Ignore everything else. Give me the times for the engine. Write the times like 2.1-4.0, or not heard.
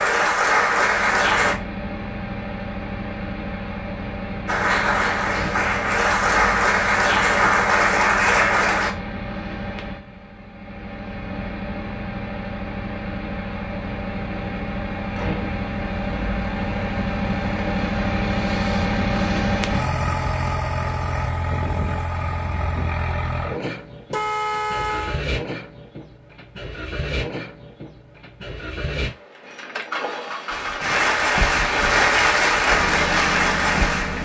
0.0-34.1.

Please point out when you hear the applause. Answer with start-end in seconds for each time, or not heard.
0.0-1.6, 4.5-8.9, 30.5-34.1.